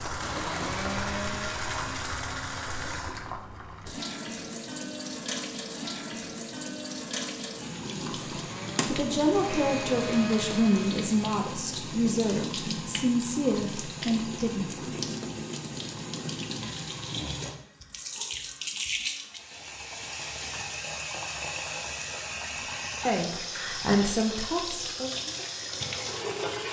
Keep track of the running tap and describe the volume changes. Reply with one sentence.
The loudness of the running tap stays about the same.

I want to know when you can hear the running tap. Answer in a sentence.
You can hear the running tap from 0.0 to 26.6 s.